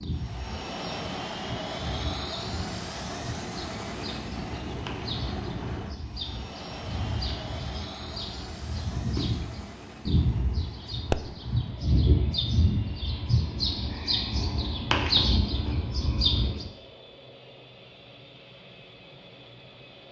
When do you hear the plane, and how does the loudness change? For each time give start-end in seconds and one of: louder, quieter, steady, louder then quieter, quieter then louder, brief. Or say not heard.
0.0-20.0 quieter.